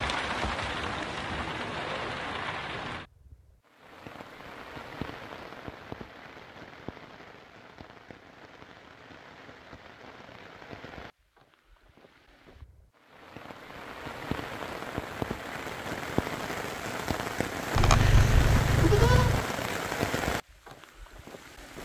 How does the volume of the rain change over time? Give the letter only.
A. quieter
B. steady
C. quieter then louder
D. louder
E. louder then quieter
C.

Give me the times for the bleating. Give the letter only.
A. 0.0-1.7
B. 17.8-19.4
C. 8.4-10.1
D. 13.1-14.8
B.